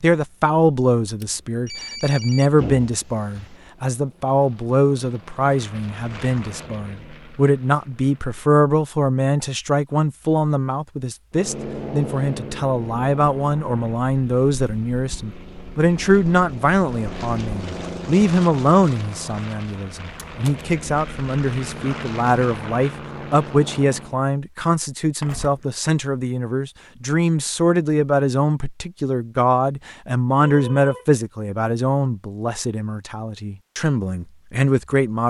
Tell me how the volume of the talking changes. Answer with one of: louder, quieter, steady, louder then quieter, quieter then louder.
steady.